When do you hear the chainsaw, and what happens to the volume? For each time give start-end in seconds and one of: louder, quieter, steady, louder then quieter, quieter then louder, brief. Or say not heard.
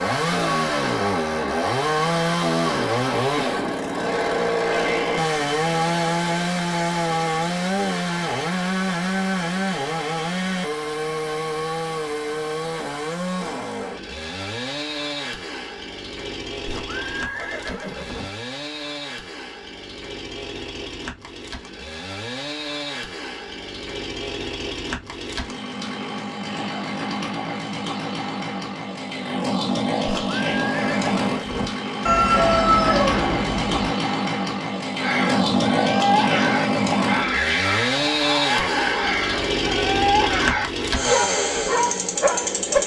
0.0-42.8 quieter then louder.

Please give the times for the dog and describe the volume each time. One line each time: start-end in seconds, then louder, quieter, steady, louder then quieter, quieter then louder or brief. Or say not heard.
35.0-42.8 steady.